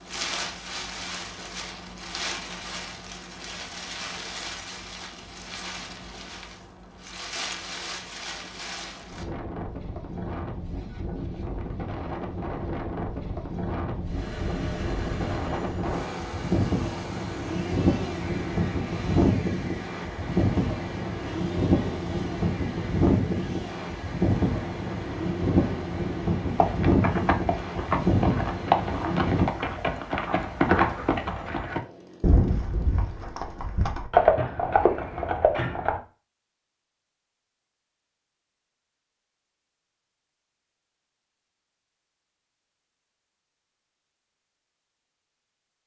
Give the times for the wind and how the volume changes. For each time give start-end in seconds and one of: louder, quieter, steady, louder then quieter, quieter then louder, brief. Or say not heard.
0.0-29.4 louder.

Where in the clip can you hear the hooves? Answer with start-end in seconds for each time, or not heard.
26.6-36.0.